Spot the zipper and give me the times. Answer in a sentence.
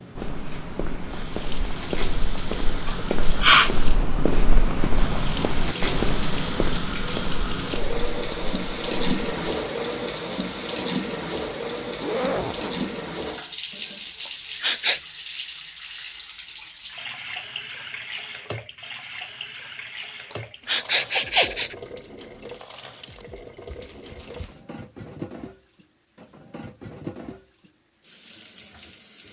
You can hear the zipper from 12.0 to 12.9 s and from 23.6 to 24.6 s.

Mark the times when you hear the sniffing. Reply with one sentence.
The sniffing can be heard from 2.9 to 3.7 s, from 14.2 to 15.0 s and from 20.3 to 21.8 s.